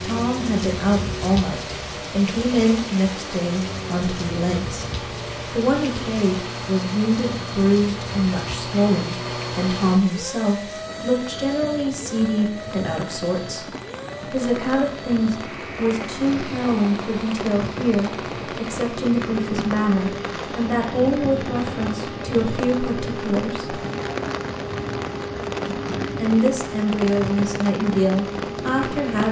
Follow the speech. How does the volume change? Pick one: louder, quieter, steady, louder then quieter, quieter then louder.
steady.